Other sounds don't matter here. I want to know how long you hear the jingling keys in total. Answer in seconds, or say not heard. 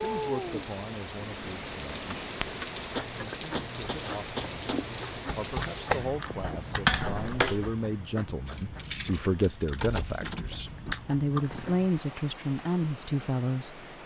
4 s.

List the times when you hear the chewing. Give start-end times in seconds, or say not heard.
2.9-11.9.